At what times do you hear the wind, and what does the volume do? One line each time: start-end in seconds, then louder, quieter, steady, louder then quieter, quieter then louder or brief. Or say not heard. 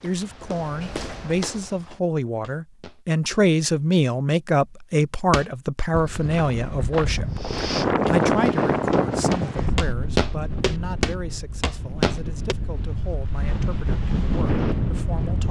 7.3-15.4 quieter then louder.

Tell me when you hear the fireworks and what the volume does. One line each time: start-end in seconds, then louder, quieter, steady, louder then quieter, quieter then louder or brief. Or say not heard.
not heard.